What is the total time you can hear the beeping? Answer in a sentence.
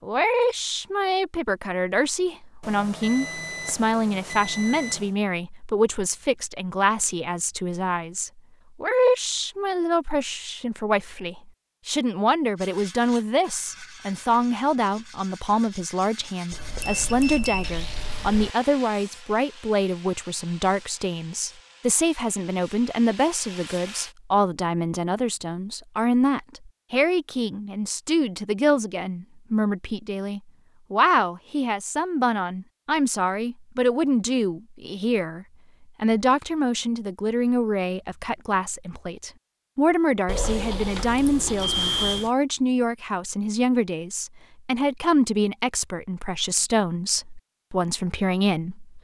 The beeping can be heard for 7 seconds in total.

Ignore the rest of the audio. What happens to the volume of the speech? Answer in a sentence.
The loudness of the speech stays about the same.